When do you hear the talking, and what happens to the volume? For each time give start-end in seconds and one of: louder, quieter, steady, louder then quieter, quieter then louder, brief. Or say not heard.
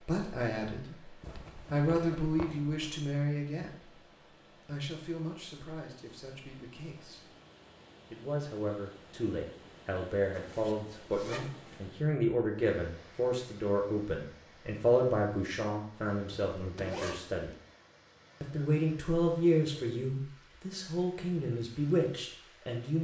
0.0-7.3 louder then quieter
8.1-17.5 louder then quieter
18.4-22.9 quieter then louder.